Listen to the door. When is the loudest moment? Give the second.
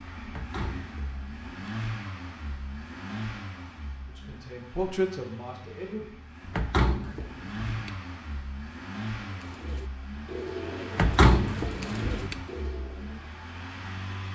11 s.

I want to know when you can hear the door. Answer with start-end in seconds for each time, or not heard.
0.3-1.6, 6.5-8.0, 10.9-12.4.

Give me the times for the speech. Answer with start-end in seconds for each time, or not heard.
4.0-6.0.